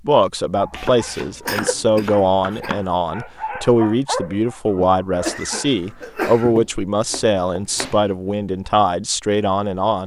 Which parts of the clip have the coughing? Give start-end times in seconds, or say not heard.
1.4-2.8, 5.2-6.5.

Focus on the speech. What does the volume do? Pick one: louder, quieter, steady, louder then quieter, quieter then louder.
steady.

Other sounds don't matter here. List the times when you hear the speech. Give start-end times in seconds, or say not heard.
0.1-10.0.